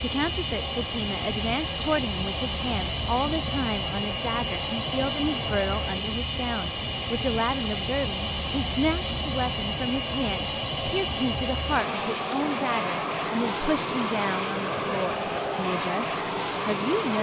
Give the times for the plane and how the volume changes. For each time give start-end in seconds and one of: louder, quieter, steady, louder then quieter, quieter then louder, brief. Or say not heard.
0.0-17.1 steady.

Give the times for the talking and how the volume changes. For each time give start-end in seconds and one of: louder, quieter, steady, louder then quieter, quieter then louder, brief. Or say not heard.
0.0-17.1 steady.